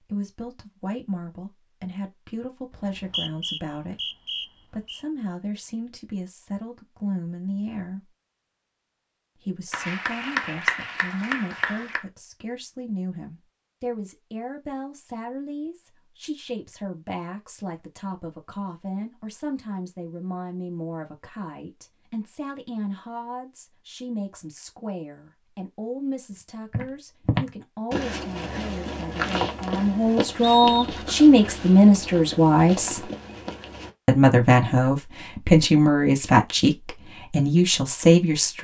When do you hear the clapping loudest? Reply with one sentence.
The volume of the clapping peaks at 11 seconds.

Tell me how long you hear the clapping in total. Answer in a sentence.
The clapping can be heard for 2 seconds in total.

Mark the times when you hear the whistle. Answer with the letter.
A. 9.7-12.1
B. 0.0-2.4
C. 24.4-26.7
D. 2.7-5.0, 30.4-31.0
D.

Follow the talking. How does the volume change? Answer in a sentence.
The loudness of the talking goes up.